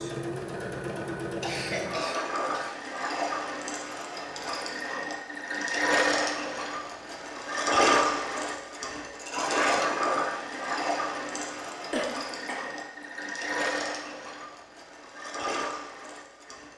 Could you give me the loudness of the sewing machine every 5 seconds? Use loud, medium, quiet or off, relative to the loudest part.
medium, loud, medium, medium.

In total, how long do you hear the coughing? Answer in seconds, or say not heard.
2 s.